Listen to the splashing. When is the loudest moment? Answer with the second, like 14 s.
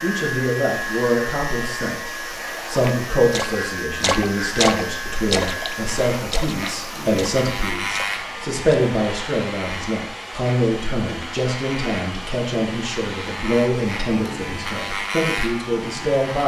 5 s.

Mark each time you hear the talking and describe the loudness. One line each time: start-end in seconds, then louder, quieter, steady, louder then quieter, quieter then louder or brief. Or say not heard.
0.0-16.4 steady.